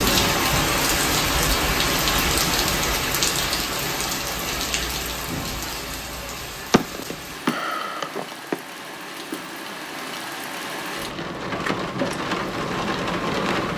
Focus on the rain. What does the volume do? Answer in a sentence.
The loudness of the rain goes down, then up.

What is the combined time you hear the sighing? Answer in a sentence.
You can hear the sighing for 2 seconds altogether.